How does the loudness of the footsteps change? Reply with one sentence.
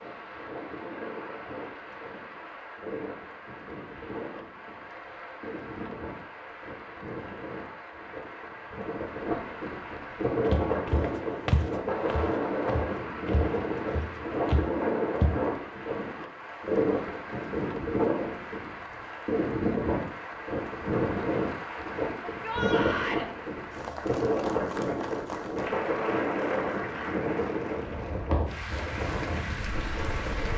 The volume of the footsteps goes down, then up.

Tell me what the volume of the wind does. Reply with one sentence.
The volume of the wind goes up.